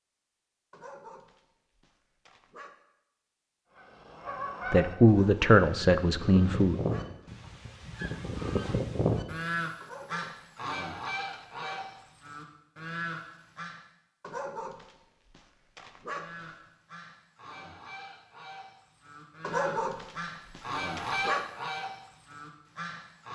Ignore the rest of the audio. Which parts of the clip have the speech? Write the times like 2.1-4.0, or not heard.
4.7-6.8.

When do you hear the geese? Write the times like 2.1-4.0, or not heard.
3.8-13.8, 16.1-23.3.